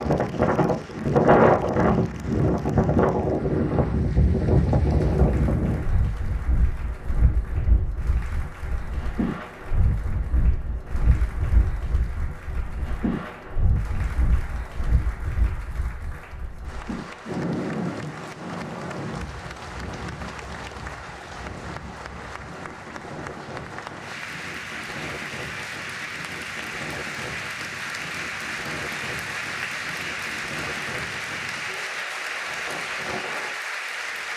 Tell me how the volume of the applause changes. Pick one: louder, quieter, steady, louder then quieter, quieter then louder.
louder.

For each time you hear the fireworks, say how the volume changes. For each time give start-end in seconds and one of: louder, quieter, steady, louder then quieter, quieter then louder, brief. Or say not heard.
not heard.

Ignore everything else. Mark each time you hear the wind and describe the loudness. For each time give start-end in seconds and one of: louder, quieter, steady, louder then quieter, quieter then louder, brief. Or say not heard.
0.0-34.3 quieter.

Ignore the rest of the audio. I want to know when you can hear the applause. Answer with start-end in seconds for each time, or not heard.
0.0-34.3.